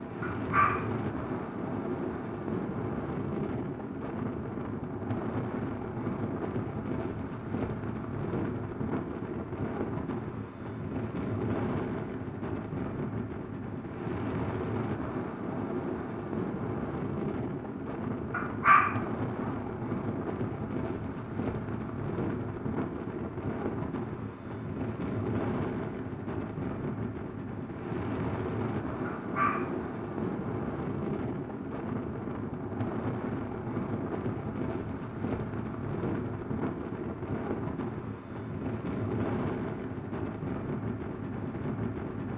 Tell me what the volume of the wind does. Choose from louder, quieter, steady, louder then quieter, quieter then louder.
steady.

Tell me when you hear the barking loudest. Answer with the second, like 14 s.
19 s.